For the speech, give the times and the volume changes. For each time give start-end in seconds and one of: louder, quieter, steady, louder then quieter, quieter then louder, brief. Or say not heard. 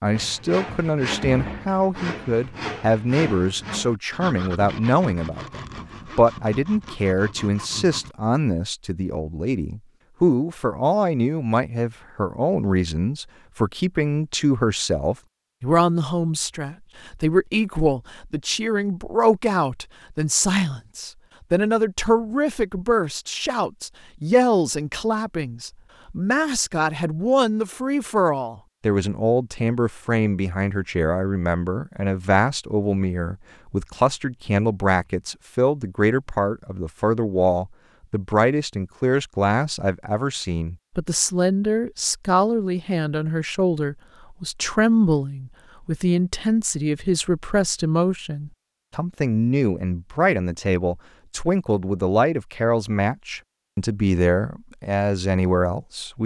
0.0-56.2 steady.